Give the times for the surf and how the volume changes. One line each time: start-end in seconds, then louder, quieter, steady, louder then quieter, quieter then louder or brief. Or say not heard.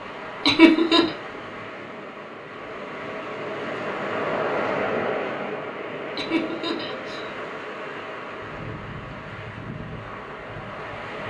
0.0-11.2 louder then quieter.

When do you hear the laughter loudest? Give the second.
1 s.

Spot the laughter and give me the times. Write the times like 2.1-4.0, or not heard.
0.5-1.1, 6.2-7.2.